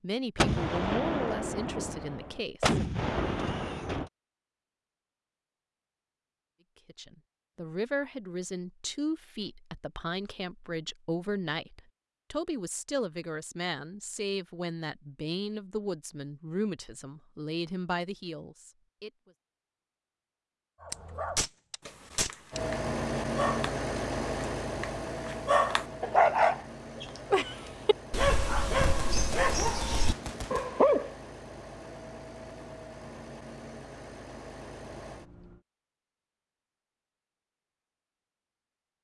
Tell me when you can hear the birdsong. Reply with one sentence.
You can't hear the birdsong here.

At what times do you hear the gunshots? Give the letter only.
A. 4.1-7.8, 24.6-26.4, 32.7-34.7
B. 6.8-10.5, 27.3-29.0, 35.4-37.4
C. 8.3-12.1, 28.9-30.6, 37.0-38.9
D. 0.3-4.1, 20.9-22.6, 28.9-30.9
D.